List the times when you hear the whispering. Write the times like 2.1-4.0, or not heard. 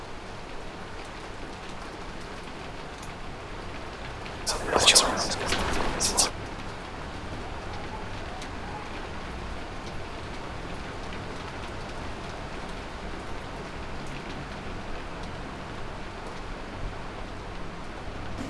4.5-6.3.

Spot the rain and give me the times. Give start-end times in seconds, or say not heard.
0.0-18.4.